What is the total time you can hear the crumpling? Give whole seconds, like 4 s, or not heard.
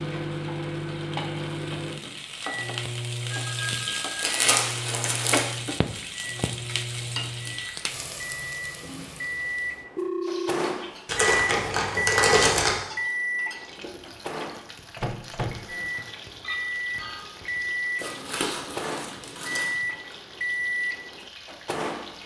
5 s.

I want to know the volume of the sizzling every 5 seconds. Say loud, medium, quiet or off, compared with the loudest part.
loud, loud, medium, medium, medium.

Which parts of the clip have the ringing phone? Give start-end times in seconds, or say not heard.
3.3-4.3, 9.9-10.8, 16.4-17.2.